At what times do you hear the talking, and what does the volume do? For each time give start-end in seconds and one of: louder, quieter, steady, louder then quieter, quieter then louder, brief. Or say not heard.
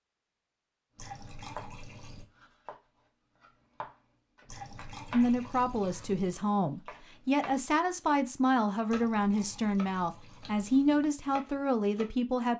5.1-12.5 steady.